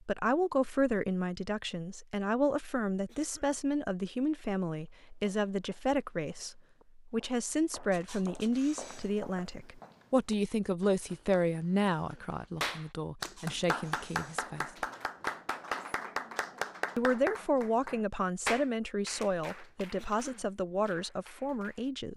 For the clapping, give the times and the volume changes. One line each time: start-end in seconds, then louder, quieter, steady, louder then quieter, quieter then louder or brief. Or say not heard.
12.6-21.9 quieter.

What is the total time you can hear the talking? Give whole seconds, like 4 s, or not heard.
20 s.